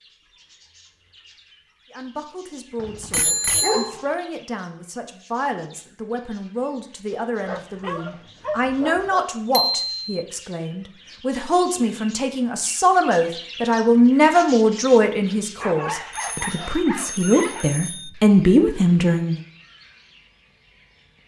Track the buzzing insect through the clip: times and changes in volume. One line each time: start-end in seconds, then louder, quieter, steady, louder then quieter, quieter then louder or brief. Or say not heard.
not heard.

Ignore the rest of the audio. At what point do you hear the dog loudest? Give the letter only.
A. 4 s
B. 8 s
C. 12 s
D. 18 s
A.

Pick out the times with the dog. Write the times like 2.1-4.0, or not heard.
2.8-4.1, 7.5-9.2, 15.6-17.8.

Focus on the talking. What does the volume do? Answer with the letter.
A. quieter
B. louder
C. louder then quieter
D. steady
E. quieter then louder
B.